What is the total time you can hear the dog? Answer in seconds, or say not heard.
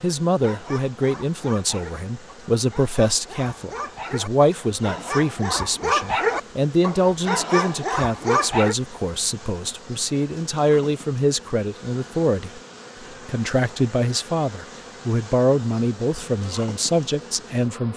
8 s.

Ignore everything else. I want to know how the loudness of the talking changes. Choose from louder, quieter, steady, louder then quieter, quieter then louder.
steady.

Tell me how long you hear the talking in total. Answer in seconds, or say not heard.
17 s.